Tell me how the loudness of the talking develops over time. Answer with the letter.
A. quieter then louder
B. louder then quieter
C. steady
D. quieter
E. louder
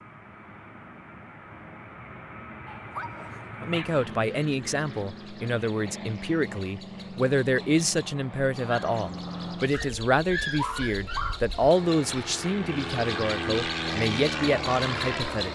C.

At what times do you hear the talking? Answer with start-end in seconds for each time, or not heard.
3.6-15.4.